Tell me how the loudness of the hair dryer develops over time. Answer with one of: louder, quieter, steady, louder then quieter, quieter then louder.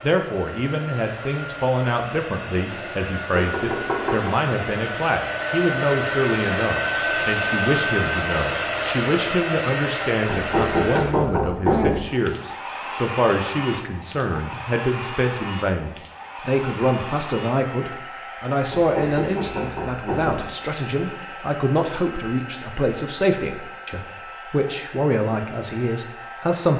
louder then quieter.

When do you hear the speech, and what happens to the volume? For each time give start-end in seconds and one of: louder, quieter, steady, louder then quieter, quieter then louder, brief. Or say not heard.
0.0-26.7 steady.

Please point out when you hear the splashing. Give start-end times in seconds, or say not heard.
not heard.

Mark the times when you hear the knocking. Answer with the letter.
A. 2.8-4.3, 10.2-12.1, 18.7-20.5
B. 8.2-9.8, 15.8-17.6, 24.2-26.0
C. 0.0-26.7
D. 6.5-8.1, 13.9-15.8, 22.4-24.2
A.